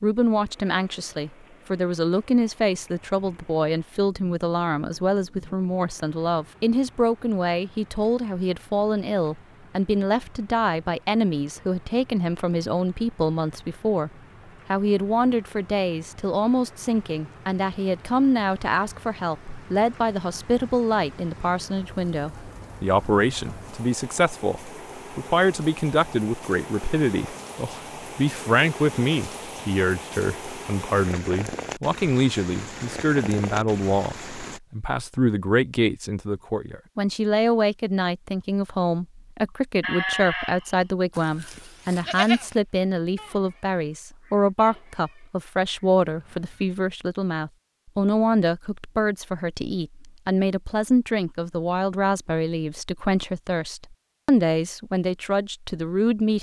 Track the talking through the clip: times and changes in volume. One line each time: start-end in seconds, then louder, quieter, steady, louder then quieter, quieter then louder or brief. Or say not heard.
0.0-14.1 steady
14.7-56.3 steady.